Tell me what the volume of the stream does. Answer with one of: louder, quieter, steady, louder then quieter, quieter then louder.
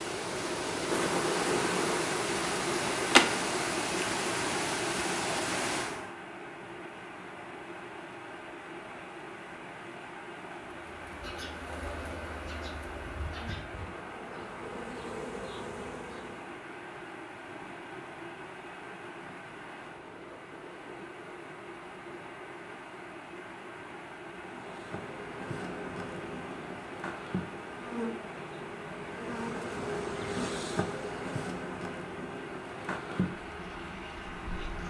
quieter.